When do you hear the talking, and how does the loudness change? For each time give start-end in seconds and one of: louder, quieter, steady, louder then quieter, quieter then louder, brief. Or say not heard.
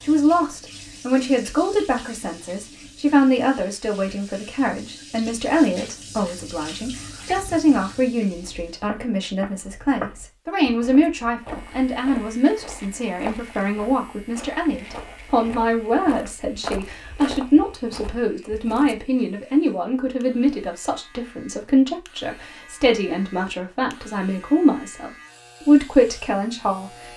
0.0-26.9 steady.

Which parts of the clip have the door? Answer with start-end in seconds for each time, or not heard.
not heard.